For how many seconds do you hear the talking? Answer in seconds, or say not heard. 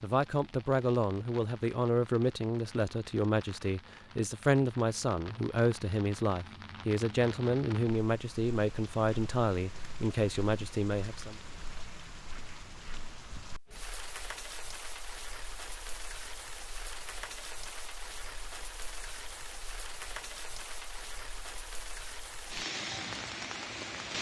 11 s.